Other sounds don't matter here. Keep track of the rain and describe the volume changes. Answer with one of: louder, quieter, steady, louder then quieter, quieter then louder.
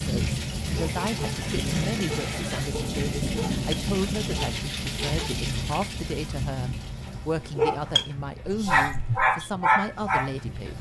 quieter.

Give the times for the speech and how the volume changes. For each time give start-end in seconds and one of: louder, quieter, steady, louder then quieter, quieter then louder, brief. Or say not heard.
0.0-10.7 steady.